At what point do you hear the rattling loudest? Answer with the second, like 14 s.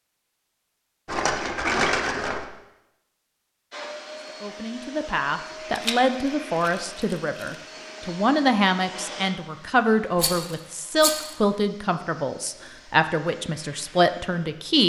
2 s.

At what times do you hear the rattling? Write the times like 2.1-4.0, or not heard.
1.1-2.5, 5.7-7.5, 10.2-11.3.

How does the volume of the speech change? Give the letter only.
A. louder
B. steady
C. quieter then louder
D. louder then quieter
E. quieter
B.